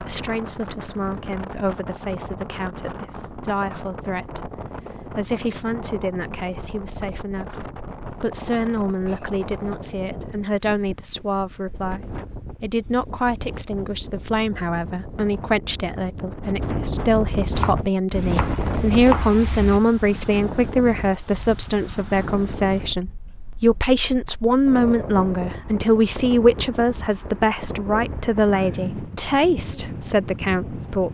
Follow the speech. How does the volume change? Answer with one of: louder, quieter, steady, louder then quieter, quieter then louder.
louder.